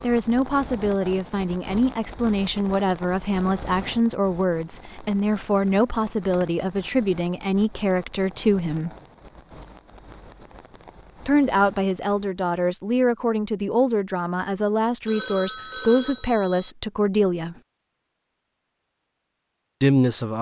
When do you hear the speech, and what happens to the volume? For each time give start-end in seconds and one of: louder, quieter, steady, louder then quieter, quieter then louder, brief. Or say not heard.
0.0-8.9 steady
11.2-17.6 steady
19.8-20.3 brief.